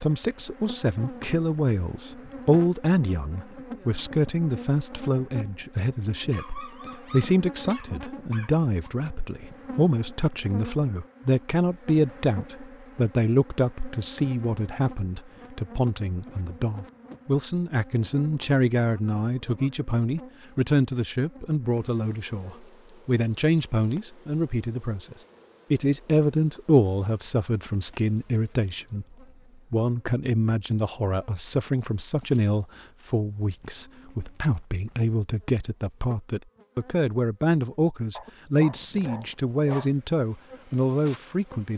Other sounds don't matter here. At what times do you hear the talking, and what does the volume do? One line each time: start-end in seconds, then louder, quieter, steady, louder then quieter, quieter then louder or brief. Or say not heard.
0.0-41.7 steady.